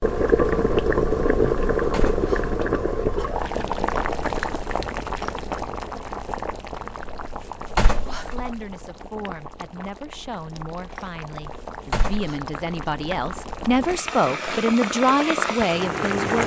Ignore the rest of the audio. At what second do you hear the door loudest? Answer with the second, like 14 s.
8 s.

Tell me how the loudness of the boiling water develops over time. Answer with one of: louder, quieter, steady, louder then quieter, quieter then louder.
quieter then louder.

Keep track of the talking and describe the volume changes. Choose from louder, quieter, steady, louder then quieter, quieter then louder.
louder.